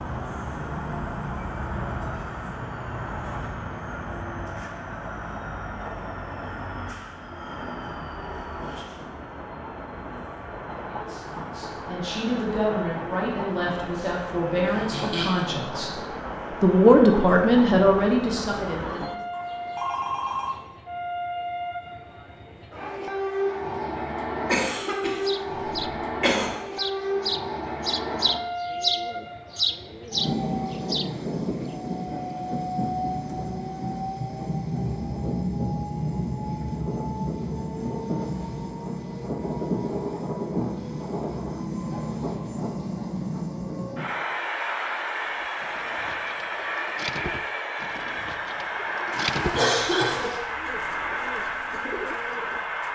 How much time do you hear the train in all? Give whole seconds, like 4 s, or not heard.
53 s.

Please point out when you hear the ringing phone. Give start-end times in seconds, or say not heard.
19.3-20.6.